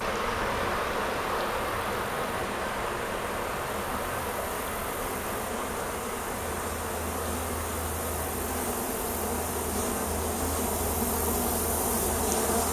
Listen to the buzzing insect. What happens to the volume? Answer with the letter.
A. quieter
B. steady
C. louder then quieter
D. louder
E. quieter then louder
D.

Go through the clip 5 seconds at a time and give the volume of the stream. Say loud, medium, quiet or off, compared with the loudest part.
loud, medium, medium.